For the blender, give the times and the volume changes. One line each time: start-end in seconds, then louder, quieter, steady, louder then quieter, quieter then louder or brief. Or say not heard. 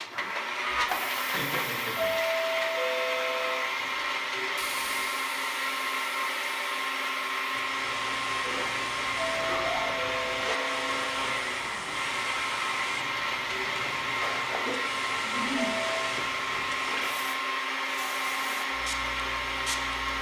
0.0-20.1 steady.